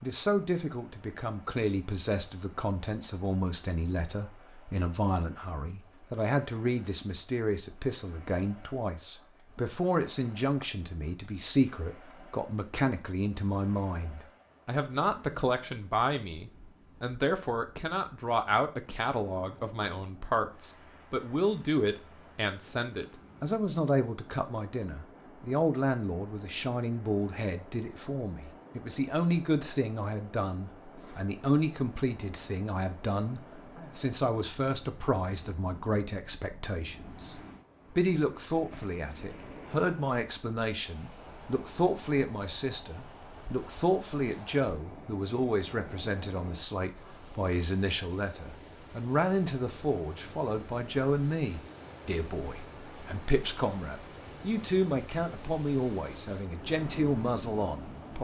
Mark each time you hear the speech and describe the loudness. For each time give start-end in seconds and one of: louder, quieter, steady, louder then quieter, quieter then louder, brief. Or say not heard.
0.0-58.1 steady.